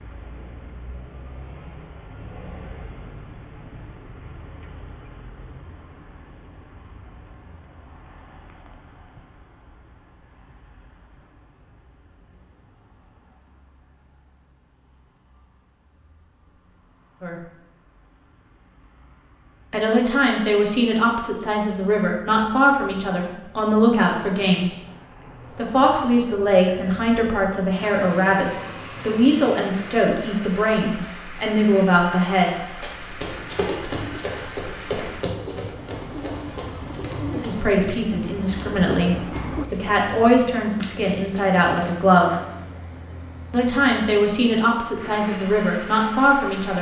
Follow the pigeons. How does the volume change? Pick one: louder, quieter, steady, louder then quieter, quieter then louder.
louder.